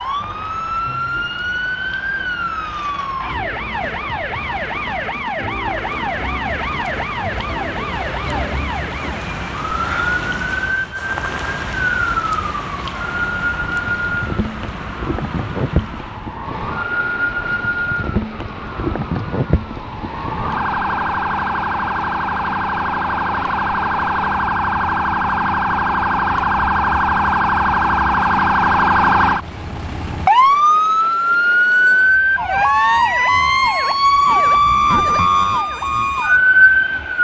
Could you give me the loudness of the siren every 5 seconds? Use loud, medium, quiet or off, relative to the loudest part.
medium, medium, medium, medium, medium, loud, loud, loud.